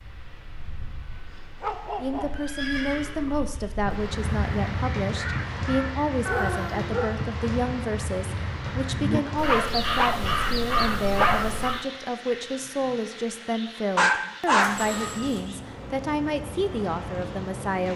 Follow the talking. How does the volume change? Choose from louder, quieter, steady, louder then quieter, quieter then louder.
steady.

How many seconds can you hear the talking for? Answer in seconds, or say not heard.
16 s.